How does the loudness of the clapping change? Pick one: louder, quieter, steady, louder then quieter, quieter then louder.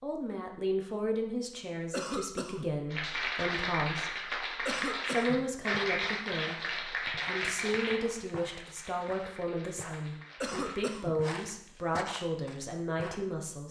quieter.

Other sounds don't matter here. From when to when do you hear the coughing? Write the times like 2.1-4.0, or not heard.
1.9-2.8, 4.7-5.5, 10.4-11.2.